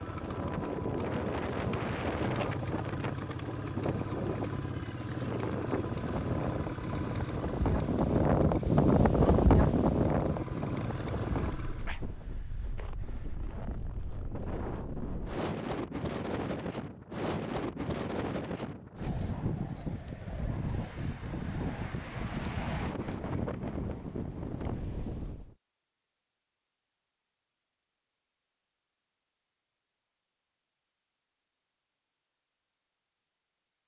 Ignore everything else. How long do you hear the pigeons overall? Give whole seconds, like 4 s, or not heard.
not heard.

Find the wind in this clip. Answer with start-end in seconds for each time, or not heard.
0.0-25.6.